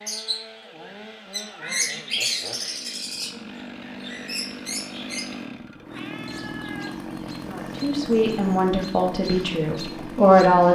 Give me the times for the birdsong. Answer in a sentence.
You can hear the birdsong from 0.0 to 10.6 s.